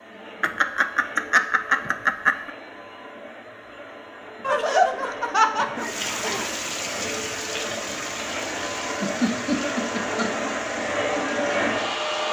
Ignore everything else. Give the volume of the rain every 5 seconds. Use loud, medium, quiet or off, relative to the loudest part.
off, loud, medium.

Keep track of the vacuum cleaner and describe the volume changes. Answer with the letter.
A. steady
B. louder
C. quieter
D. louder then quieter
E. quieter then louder
B.